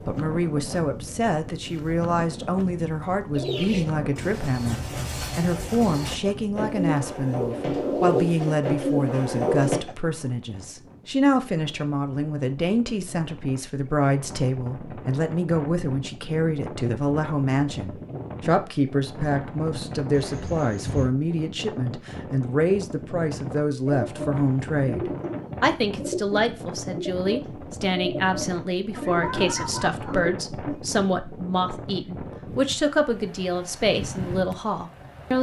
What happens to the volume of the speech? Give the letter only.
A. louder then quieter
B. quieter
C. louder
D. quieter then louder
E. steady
E.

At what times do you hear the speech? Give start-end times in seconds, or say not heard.
0.1-35.3.